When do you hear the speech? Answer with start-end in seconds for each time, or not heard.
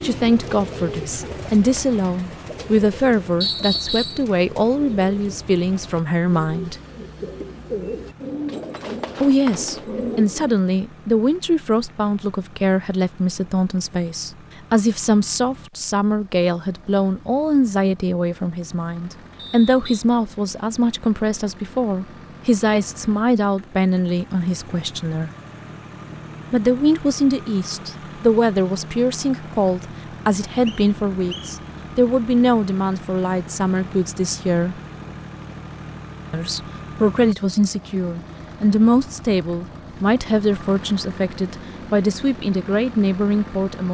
0.0-6.8, 9.2-25.3, 26.5-34.8, 36.3-43.8.